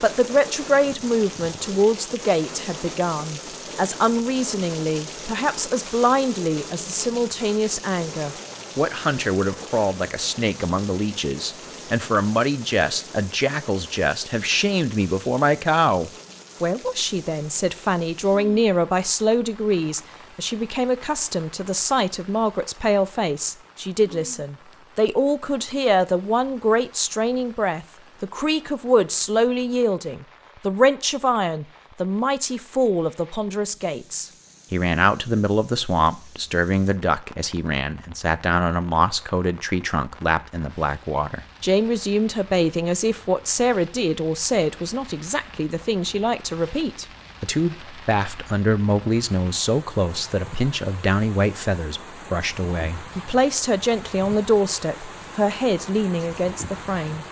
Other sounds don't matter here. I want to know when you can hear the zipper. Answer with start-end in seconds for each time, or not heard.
not heard.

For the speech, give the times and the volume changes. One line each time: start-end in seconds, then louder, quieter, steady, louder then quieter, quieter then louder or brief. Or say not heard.
0.0-57.2 steady.